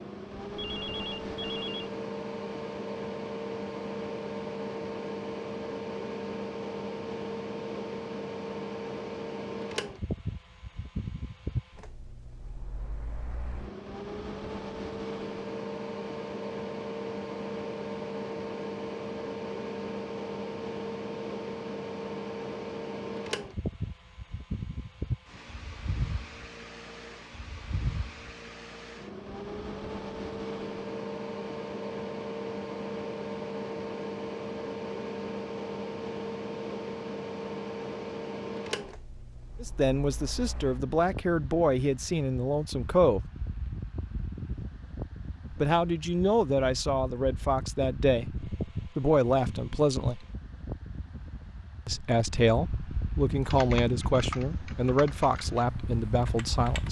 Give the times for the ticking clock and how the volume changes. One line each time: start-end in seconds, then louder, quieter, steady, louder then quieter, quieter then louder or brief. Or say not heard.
not heard.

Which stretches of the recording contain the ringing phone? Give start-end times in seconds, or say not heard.
0.6-1.9.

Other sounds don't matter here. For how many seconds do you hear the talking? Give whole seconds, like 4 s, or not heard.
13 s.